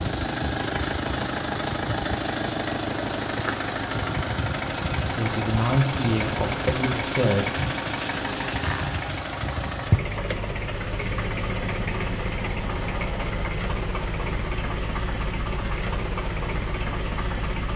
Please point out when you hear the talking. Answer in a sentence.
You can hear the talking from 5.1 to 7.5 s.